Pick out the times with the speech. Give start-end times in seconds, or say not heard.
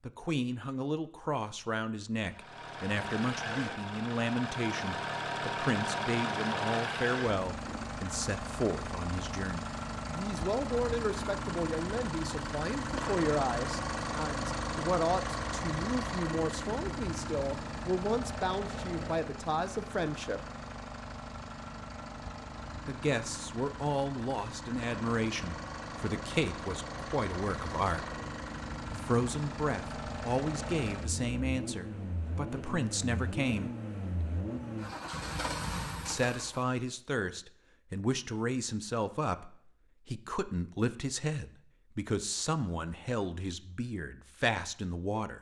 0.1-20.4, 22.9-28.1, 28.9-33.7, 36.0-45.3.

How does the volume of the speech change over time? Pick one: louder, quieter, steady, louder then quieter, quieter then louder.
steady.